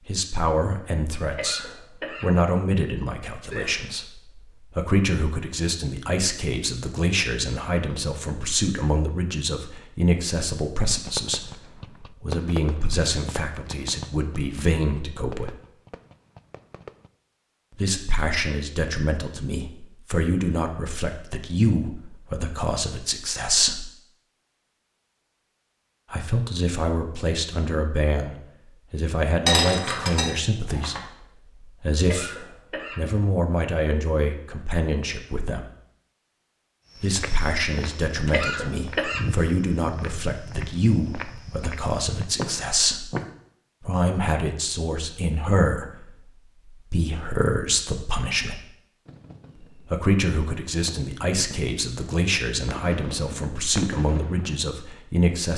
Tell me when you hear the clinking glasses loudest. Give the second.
30 s.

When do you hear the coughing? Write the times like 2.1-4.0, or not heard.
1.2-3.8, 31.9-33.2, 38.1-39.5.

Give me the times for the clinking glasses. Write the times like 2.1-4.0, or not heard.
29.4-31.0.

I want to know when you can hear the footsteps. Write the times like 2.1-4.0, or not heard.
36.9-43.4.